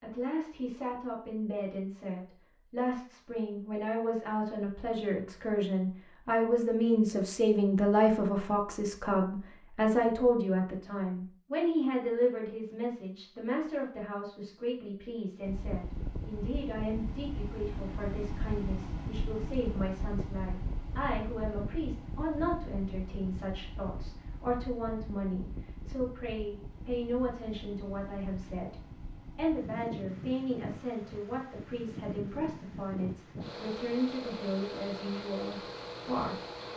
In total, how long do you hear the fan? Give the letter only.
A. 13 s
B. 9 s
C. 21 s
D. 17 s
C.